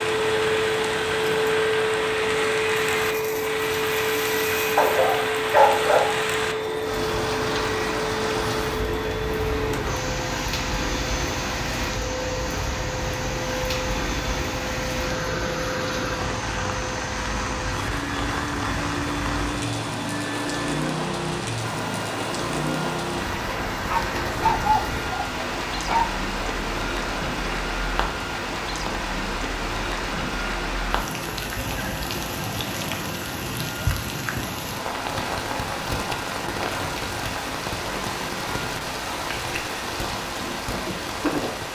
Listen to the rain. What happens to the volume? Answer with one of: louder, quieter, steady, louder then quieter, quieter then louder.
steady.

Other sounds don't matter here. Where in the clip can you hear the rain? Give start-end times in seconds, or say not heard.
0.0-41.7.